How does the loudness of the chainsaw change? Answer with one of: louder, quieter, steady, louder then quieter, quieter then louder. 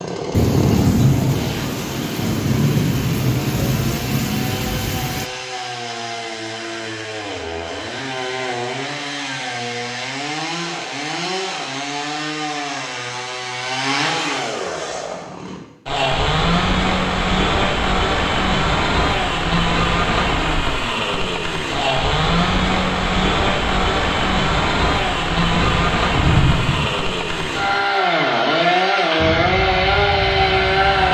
louder.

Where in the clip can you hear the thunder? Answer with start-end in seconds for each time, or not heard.
0.3-5.3, 25.5-26.9.